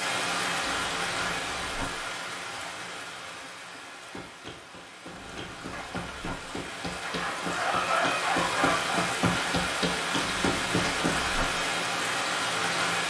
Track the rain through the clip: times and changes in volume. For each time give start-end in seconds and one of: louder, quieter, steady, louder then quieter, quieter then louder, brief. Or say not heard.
0.0-13.0 quieter then louder.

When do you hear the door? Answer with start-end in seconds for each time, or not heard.
0.6-1.9, 5.1-6.3, 10.2-11.4.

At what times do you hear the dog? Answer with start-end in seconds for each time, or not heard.
7.0-9.1.